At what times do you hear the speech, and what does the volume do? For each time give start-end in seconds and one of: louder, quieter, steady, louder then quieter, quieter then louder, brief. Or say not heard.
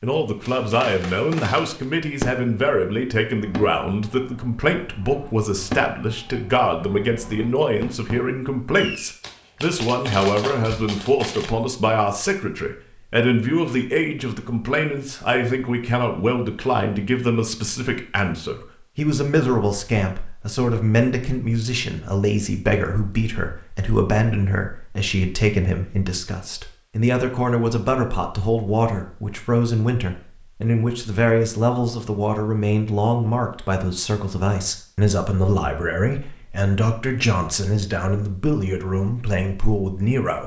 0.0-40.4 steady.